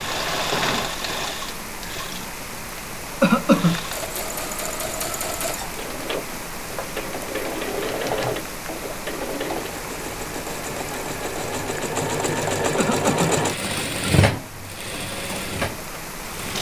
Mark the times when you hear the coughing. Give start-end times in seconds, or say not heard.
3.2-3.8, 12.8-13.3.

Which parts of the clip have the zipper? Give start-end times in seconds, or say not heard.
not heard.